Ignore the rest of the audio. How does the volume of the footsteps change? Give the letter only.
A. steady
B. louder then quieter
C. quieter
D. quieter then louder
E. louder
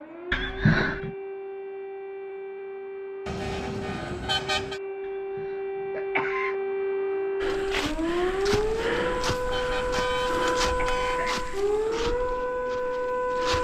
C.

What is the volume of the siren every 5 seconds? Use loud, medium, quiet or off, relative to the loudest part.
medium, loud, loud.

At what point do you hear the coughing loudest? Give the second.
1 s.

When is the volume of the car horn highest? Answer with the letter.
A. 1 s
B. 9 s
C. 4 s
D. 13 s
C.